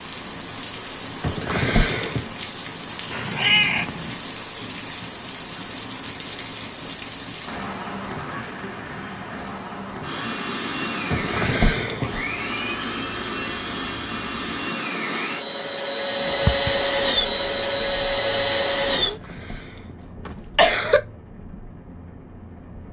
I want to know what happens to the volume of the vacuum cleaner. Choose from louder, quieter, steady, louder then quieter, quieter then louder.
louder.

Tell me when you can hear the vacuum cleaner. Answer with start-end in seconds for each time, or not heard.
10.0-19.1.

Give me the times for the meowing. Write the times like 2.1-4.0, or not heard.
3.1-4.2, 16.2-16.7.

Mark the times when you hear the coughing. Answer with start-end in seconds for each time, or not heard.
1.2-2.3, 11.1-12.2, 19.0-19.6, 20.2-21.0.